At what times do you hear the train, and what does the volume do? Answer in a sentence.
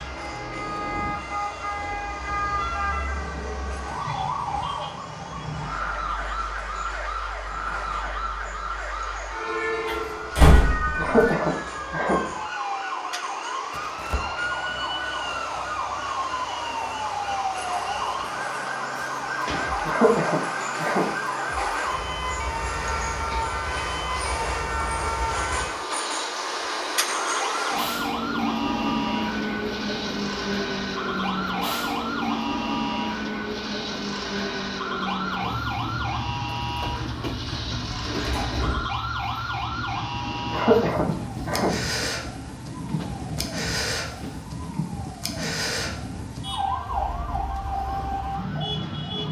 The train can be heard from 0.0 to 49.2 s, getting louder then quieter.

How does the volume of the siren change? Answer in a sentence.
The loudness of the siren stays about the same.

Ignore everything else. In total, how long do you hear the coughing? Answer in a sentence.
You can hear the coughing for 4 seconds altogether.